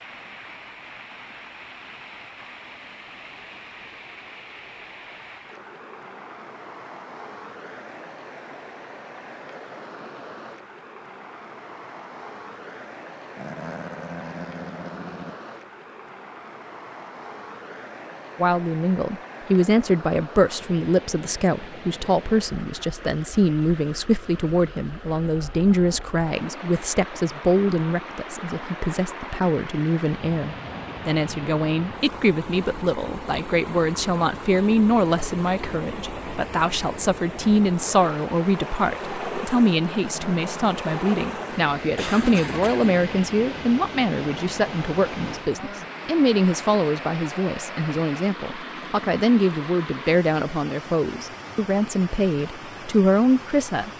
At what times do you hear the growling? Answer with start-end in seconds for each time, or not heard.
13.3-15.3, 39.9-40.8.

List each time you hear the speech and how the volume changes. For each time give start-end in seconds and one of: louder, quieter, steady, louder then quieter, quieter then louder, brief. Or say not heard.
18.4-53.9 steady.